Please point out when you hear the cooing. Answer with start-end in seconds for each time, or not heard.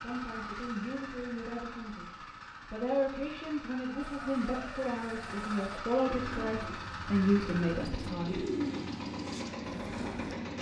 4.0-10.3.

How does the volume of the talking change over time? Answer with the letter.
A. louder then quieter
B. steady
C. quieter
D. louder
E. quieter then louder
D.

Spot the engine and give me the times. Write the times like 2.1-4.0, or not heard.
0.0-10.5.